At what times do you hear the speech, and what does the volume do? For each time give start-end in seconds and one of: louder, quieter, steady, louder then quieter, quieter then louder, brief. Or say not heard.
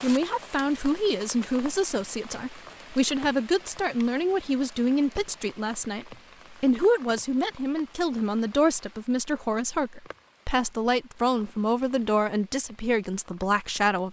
0.0-14.0 steady.